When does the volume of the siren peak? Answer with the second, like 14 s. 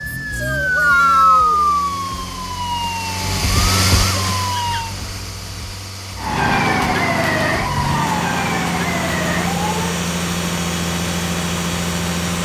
1 s.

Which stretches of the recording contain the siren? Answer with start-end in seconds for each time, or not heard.
0.0-5.0, 6.2-10.1.